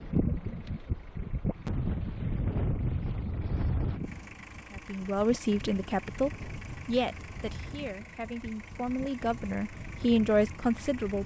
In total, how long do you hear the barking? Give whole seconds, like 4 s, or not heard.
not heard.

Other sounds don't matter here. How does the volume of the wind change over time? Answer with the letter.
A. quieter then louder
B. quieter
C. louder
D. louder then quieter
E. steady
B.